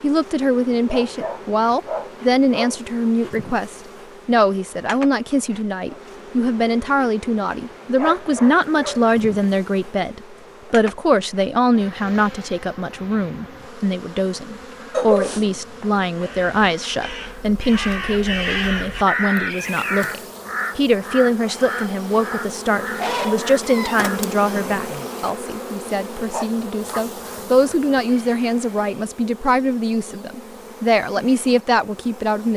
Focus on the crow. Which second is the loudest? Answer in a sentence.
The loudest moment of the crow is at 19 seconds.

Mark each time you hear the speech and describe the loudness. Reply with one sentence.
You can hear the speech from 0.0 to 32.5 s, at a steady volume.